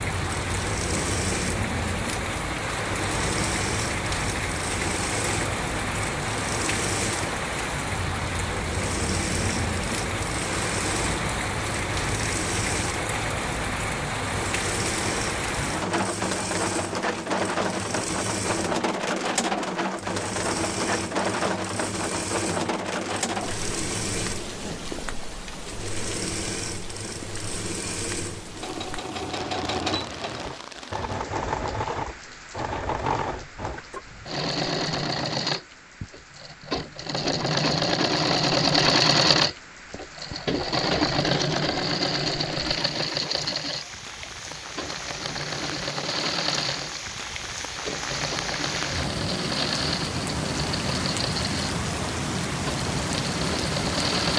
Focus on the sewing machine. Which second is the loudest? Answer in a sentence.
The loudest moment of the sewing machine is at 39 seconds.